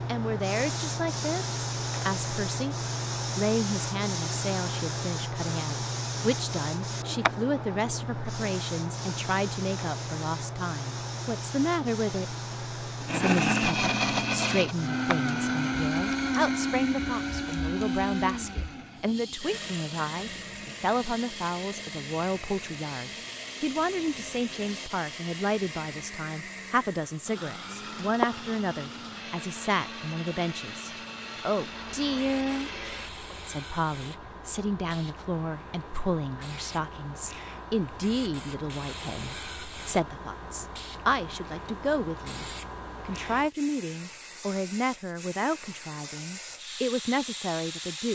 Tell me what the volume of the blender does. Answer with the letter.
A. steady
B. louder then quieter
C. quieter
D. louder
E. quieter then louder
C.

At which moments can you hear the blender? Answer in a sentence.
You can hear the blender from 12.9 to 33.3 s.